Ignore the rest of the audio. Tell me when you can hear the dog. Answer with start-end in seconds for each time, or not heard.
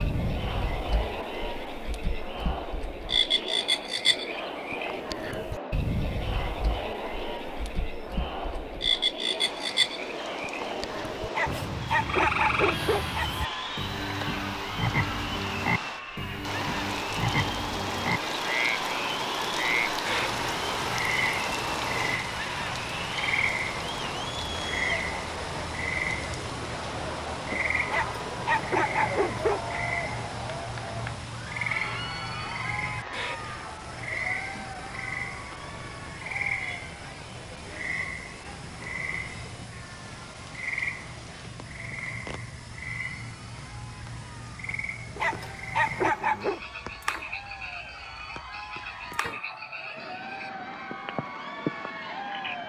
11.3-13.6, 27.9-29.8, 45.1-46.6.